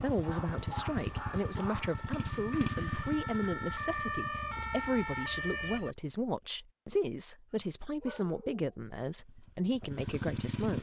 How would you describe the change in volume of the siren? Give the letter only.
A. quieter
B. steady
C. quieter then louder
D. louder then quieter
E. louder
E.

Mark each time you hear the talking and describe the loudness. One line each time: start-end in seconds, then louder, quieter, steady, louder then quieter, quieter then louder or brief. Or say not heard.
0.0-10.7 steady.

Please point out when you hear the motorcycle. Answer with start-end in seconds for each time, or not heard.
0.0-4.9, 9.1-10.7.